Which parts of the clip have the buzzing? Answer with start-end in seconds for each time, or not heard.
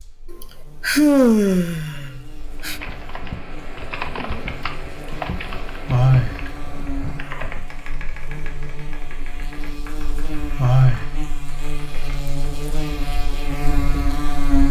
0.0-14.6.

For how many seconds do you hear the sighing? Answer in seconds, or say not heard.
4 s.